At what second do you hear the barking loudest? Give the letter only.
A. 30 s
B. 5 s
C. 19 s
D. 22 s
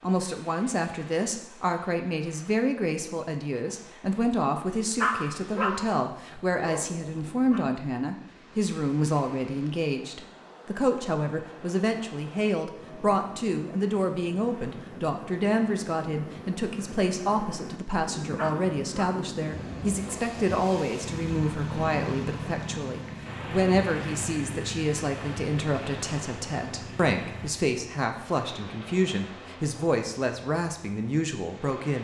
B.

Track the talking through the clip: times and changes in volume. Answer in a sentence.
The talking can be heard from 0.0 to 31.9 s, at a steady volume.